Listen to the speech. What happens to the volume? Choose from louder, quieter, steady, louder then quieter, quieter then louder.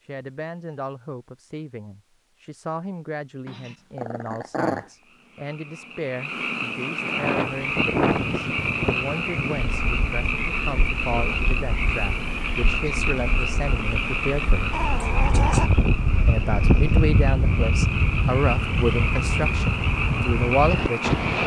louder.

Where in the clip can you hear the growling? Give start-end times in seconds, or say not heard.
3.5-4.8, 14.7-15.7.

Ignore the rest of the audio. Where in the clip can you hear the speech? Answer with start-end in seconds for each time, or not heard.
0.1-14.8, 16.2-21.1.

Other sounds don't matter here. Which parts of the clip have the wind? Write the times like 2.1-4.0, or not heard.
7.0-21.4.